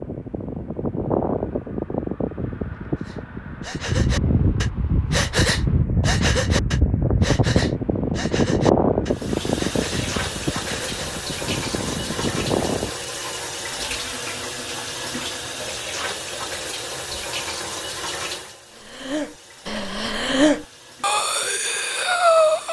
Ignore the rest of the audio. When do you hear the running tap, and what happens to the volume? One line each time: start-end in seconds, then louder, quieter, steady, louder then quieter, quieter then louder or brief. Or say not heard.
9.1-22.6 quieter.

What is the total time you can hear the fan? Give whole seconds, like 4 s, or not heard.
13 s.